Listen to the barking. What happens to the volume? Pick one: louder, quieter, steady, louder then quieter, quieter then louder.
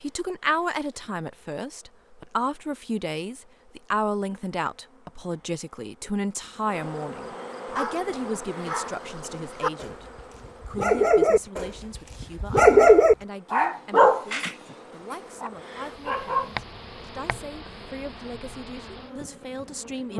louder then quieter.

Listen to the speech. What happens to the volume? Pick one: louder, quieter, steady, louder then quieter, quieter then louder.
quieter.